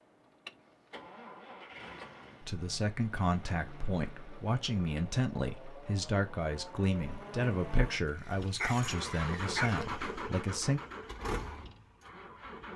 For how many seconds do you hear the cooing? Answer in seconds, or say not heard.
not heard.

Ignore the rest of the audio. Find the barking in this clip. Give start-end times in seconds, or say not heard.
8.1-10.1.